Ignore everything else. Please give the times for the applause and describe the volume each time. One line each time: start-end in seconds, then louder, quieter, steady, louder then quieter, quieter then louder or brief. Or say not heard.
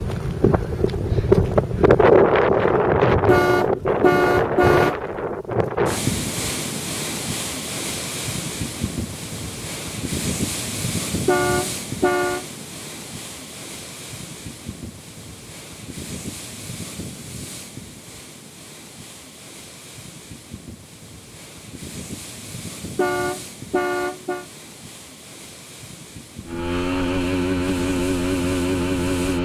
not heard.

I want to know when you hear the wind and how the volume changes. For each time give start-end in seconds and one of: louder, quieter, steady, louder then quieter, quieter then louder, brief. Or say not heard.
0.0-29.3 quieter.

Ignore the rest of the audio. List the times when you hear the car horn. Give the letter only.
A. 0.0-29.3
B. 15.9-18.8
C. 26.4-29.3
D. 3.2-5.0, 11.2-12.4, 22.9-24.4
D.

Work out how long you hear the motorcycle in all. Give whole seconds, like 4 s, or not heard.
3 s.